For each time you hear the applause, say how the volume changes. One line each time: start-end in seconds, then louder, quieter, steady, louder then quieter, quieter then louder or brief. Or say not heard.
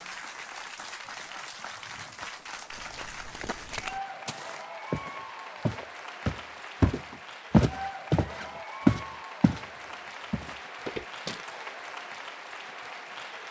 0.0-13.4 steady.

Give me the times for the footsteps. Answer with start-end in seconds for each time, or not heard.
2.7-9.7, 10.3-11.4.